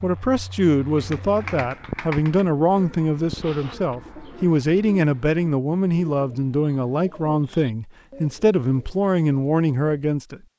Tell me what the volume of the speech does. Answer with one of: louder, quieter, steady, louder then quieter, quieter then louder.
steady.